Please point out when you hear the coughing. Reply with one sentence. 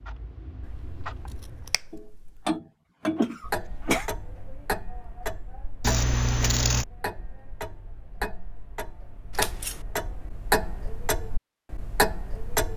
You can hear the coughing from 3.1 to 4.0 s.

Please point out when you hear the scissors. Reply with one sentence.
The scissors can be heard from 0.6 to 2.4 s, from 5.8 to 6.8 s and from 9.3 to 9.8 s.